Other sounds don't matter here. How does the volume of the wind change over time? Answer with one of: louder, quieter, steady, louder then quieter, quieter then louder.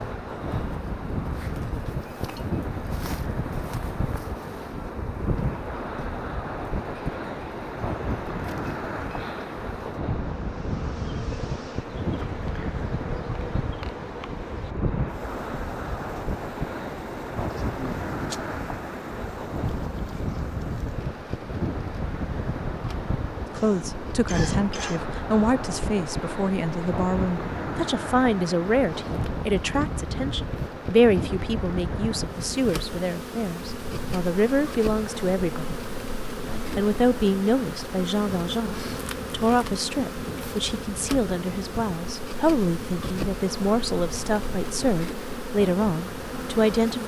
quieter.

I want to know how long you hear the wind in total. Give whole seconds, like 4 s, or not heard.
47 s.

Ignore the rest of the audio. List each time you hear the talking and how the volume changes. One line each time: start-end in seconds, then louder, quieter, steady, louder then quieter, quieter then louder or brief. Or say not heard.
23.5-35.8 steady
36.8-47.0 steady.